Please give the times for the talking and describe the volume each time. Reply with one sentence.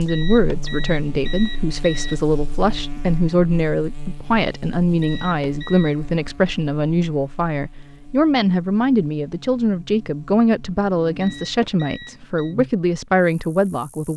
The talking can be heard from 0.0 to 14.1 s, at a steady volume.